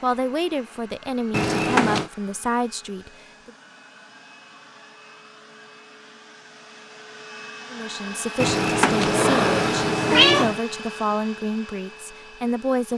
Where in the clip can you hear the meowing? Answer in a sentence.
You can hear the meowing from 1.3 to 2.1 s and from 8.4 to 10.6 s.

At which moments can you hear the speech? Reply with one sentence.
The speech can be heard from 0.0 to 3.5 s and from 7.7 to 12.9 s.